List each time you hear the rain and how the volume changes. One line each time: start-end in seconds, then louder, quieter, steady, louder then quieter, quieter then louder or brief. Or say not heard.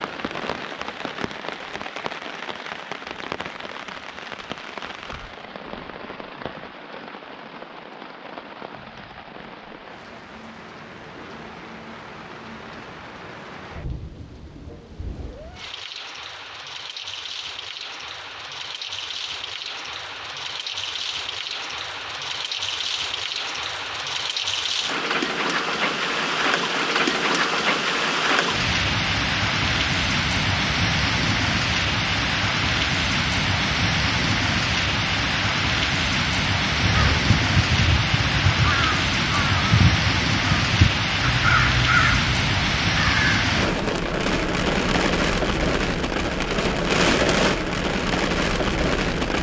0.0-49.3 louder.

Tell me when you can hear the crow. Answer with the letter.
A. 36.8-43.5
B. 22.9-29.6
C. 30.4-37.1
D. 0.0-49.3
A.